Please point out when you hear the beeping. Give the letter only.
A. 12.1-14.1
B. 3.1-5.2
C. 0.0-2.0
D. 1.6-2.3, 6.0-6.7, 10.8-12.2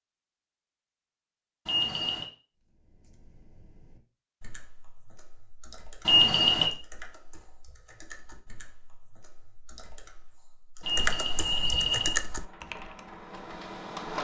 D.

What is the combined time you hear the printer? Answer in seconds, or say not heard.
2 s.